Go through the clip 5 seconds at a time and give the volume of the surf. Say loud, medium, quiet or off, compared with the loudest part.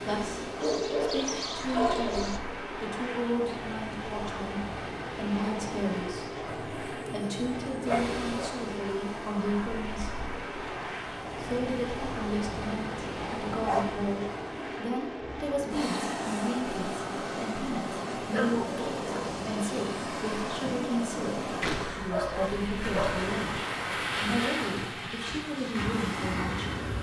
medium, medium, medium, loud, loud, loud.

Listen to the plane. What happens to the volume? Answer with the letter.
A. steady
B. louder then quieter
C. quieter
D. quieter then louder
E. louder
A.